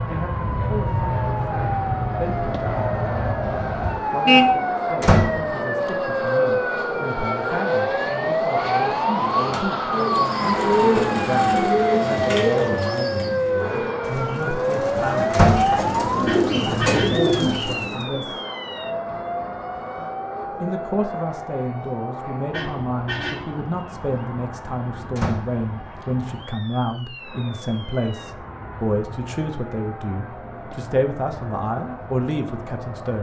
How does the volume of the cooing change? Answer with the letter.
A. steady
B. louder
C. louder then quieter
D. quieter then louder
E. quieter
D.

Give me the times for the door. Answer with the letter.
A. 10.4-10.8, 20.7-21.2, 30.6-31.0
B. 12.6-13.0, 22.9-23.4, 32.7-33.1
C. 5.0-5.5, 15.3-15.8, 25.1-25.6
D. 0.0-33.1
C.